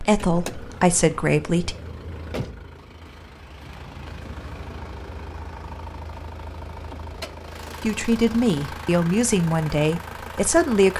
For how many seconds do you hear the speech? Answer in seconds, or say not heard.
5 s.